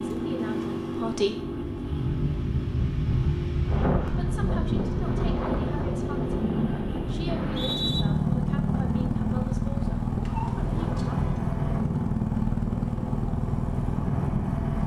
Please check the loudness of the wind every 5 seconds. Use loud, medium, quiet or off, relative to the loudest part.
loud, loud, medium.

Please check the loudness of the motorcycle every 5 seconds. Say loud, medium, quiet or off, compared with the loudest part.
medium, loud, loud.